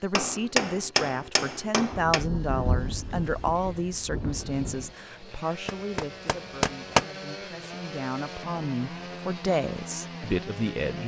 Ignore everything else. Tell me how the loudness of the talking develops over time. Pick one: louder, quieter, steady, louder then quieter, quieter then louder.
quieter then louder.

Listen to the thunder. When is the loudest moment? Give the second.
3 s.